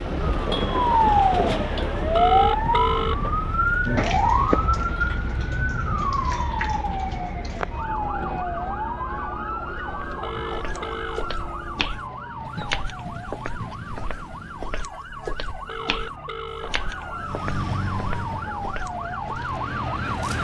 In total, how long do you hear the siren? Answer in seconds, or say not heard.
20 s.